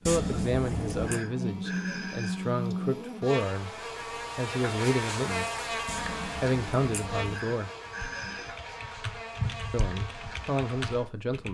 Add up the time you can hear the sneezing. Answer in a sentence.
The sneezing can be heard for 3 seconds in total.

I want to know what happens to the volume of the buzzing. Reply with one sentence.
The volume of the buzzing goes down.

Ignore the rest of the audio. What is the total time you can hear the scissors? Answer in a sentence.
You can hear the scissors for 3 seconds altogether.